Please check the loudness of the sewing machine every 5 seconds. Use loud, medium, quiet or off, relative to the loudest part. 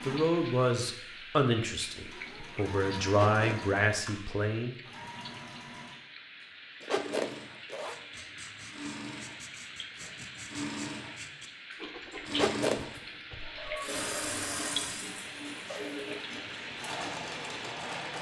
medium, medium, loud, loud.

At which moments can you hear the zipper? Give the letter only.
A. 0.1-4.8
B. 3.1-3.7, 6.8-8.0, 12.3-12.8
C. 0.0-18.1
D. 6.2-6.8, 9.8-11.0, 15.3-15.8
B.